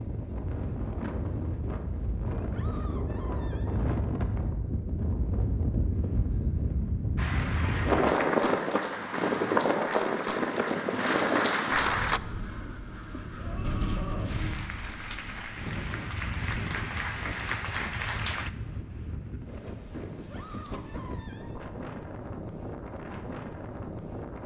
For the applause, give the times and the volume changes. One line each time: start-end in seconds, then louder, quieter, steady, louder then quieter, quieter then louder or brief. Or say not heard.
7.2-12.2 louder
14.2-18.5 louder.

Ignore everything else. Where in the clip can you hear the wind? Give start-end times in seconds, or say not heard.
0.0-24.4.